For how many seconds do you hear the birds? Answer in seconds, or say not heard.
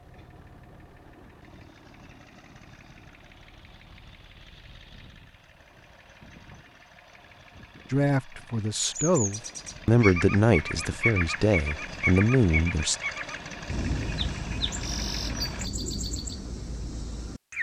9 s.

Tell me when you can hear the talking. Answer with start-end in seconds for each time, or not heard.
7.9-12.9.